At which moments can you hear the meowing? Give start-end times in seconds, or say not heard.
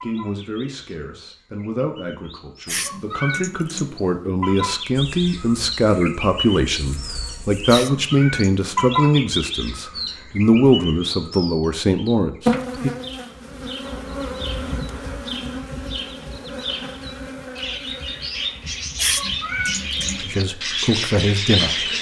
2.6-4.3, 7.7-8.8, 18.9-20.2.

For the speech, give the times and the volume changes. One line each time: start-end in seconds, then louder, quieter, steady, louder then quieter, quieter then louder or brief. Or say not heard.
0.0-12.9 louder
20.2-21.9 brief.